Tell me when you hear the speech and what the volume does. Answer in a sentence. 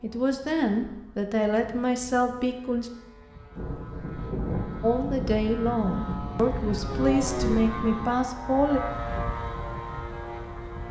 The speech can be heard briefly from 0.0 to 2.9 s; and from 4.8 to 8.8 s, at a steady volume.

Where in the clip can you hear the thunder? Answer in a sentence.
The thunder can be heard from 3.5 to 8.2 s.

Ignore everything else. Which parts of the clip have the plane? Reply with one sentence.
The plane can be heard from 0.0 to 10.8 s.